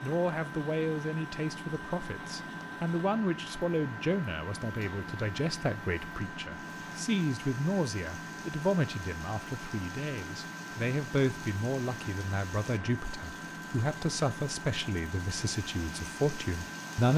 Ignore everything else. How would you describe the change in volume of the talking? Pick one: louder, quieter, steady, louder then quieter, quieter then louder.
steady.